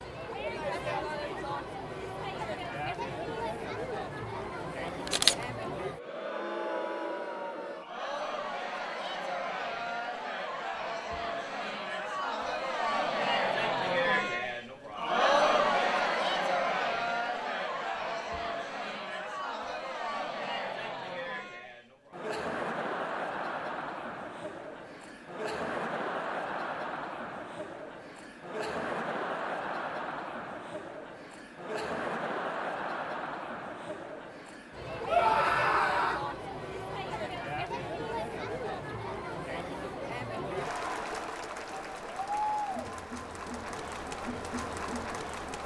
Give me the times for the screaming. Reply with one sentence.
The screaming can be heard from 35.0 to 36.2 s.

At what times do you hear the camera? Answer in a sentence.
You can hear the camera from 5.0 to 5.5 s.